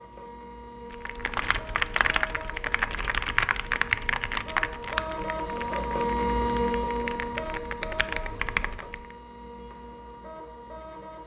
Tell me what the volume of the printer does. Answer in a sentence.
The loudness of the printer goes up, then down.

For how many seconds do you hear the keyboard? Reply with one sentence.
You can hear the keyboard for 8 seconds altogether.